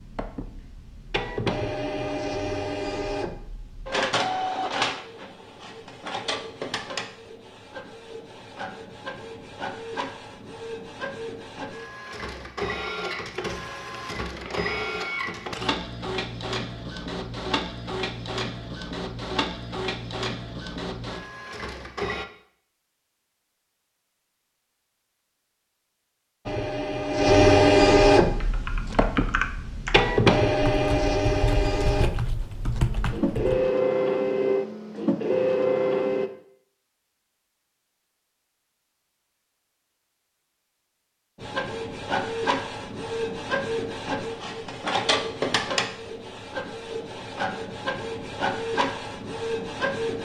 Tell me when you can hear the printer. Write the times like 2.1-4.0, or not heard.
0.0-22.2, 26.4-36.3, 41.4-50.2.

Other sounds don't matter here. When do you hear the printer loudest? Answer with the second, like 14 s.
28 s.